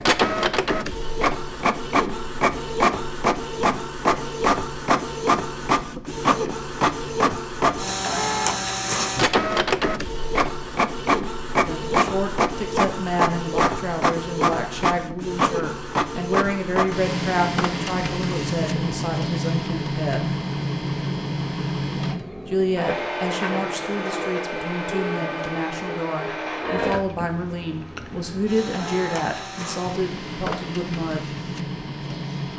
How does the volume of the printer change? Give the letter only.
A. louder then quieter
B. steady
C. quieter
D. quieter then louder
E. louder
C.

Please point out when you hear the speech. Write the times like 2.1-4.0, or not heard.
11.7-20.4, 22.4-31.3.